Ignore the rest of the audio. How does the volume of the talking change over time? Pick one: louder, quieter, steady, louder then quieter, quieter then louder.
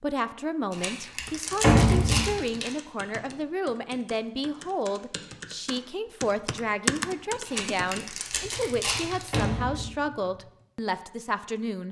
steady.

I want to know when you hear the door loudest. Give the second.
2 s.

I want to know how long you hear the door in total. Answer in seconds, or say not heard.
2 s.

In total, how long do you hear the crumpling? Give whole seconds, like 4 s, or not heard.
4 s.